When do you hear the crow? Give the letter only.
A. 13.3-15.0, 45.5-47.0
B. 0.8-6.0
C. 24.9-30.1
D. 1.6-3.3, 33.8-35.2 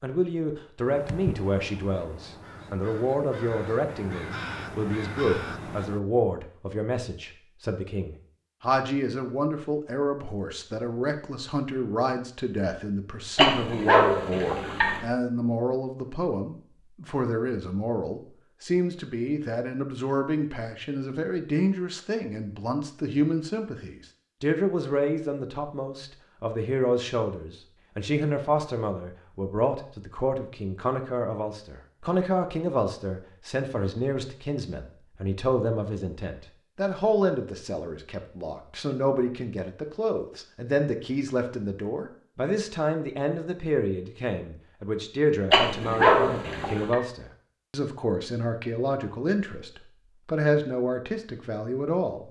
B.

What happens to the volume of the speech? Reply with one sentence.
The loudness of the speech stays about the same.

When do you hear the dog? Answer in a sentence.
The dog can be heard from 13.3 to 15.0 s and from 45.5 to 47.0 s.